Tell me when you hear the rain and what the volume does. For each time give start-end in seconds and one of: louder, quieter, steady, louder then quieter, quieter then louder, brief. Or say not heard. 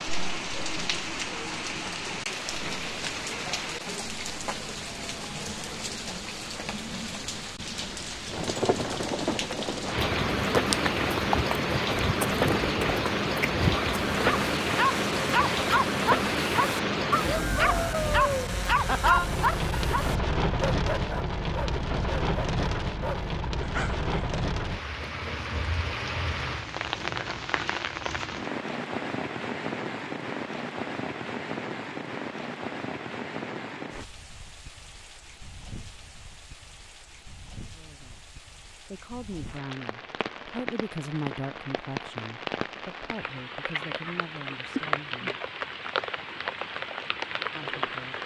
0.0-48.2 louder then quieter.